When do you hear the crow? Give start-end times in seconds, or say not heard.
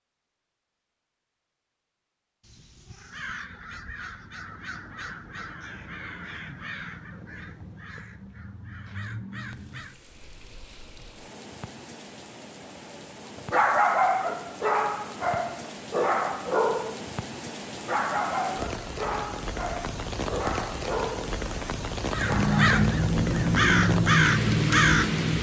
3.0-10.0, 22.1-25.3.